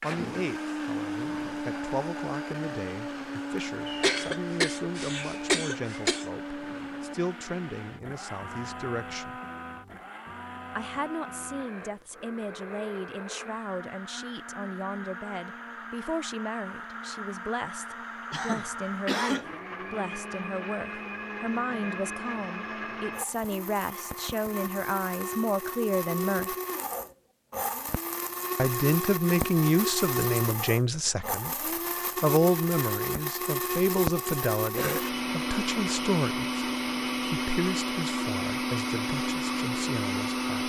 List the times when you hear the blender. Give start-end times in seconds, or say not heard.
0.0-40.6.